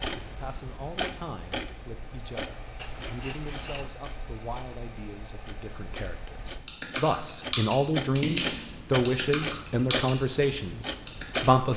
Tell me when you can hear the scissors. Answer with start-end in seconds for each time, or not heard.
2.8-4.0.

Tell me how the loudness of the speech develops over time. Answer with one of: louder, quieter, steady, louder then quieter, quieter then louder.
louder.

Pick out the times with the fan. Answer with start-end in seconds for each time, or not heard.
0.1-6.6.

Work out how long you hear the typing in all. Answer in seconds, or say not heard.
5 s.